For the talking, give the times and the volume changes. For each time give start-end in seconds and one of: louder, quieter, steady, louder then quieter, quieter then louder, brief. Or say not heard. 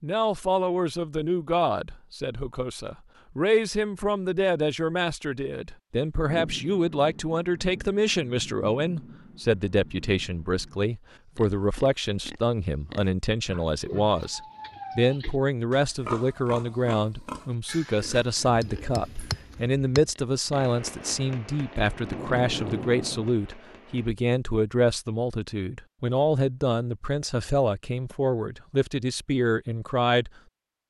0.0-30.3 steady.